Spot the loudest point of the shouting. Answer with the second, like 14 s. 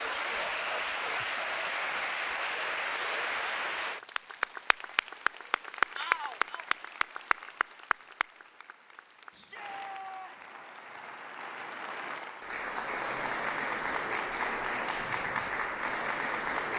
6 s.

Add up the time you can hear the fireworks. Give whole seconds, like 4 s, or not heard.
not heard.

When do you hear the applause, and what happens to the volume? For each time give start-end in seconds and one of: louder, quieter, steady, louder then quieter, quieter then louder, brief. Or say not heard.
0.0-16.7 quieter then louder.